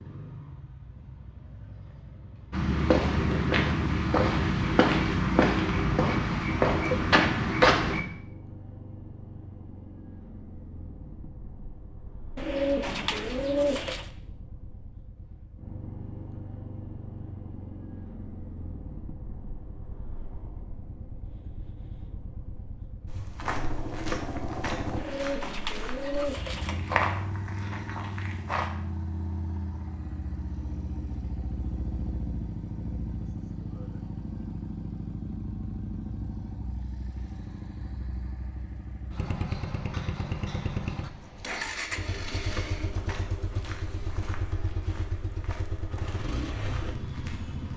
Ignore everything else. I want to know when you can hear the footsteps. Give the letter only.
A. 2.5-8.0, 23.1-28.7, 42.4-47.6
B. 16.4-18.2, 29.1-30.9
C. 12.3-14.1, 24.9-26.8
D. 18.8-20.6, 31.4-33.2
A.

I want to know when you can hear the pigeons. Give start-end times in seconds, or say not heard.
12.3-14.1, 24.9-26.8.